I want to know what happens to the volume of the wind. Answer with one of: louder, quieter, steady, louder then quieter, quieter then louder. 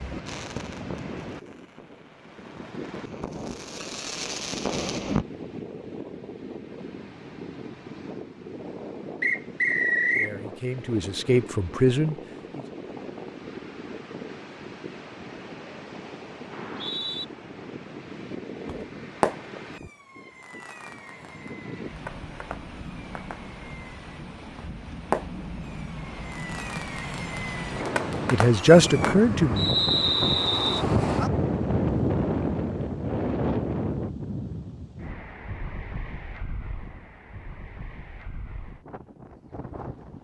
louder.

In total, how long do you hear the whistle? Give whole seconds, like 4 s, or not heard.
3 s.